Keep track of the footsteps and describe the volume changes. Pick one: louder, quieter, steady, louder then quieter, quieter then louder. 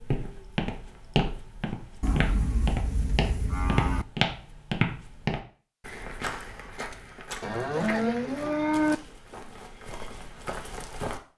quieter.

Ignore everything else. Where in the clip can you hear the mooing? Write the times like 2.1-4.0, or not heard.
2.0-4.0, 7.4-8.9.